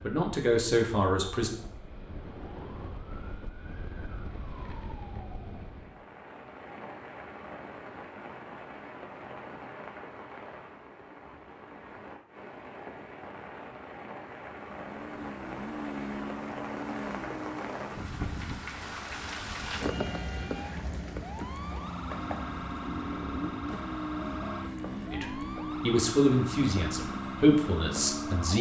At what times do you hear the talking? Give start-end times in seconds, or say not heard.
0.0-1.6, 25.1-28.5.